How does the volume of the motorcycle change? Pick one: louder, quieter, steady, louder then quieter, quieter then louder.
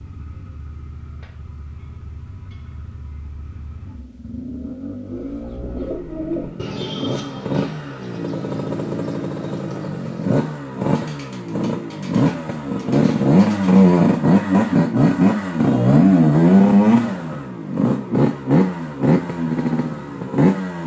louder.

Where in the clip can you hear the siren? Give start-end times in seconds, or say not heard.
not heard.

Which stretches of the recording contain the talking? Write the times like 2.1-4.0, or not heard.
not heard.